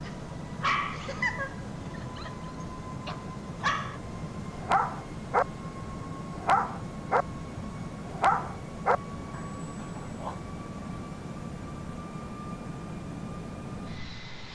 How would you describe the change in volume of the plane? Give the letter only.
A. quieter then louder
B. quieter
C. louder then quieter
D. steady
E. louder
D.